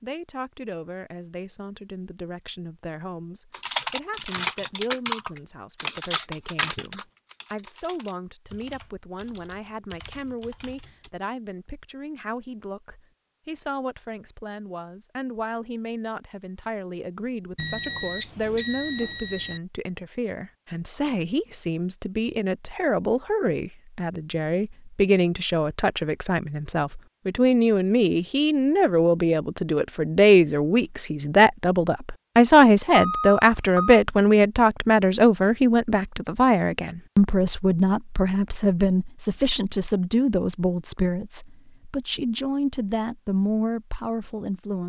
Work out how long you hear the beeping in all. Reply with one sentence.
You can hear the beeping for 3 seconds altogether.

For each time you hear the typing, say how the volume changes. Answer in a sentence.
You can hear the typing from 3.5 to 11.1 s, getting quieter.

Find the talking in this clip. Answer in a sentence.
The talking can be heard from 0.0 to 44.8 s.